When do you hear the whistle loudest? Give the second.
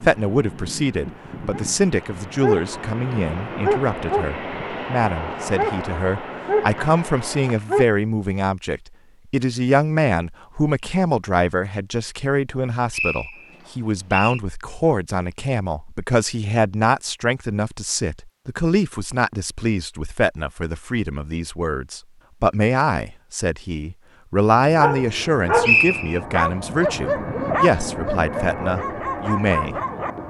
26 s.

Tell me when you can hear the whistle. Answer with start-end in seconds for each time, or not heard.
6.8-7.8, 12.5-14.4, 25.2-26.2.